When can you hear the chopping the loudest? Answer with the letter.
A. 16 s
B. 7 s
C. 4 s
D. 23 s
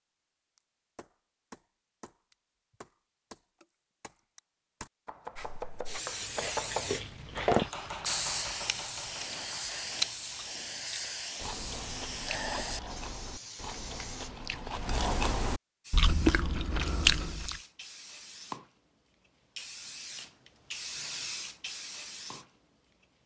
B.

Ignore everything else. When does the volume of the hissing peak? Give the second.
8 s.